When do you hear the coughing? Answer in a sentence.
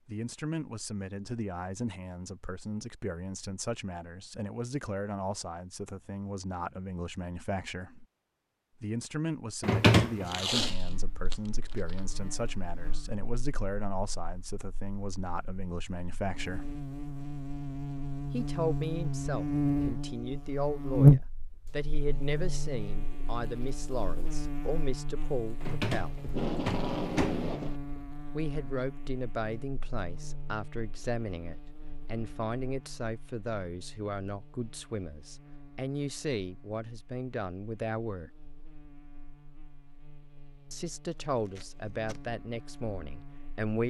The coughing can't be heard in this clip.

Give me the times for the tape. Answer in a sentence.
The tape can be heard from 10.2 to 11.3 s, from 26.2 to 27.8 s and from 41.5 to 42.2 s.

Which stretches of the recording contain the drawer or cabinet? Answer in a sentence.
You can hear the drawer or cabinet from 9.6 to 10.3 s and from 25.6 to 27.4 s.